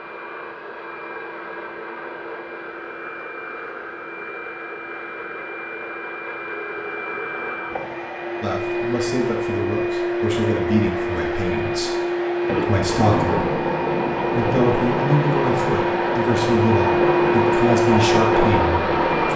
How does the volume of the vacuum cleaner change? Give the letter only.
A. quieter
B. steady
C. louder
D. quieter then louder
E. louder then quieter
C.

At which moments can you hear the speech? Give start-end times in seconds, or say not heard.
8.4-11.9, 12.6-13.4, 14.3-19.3.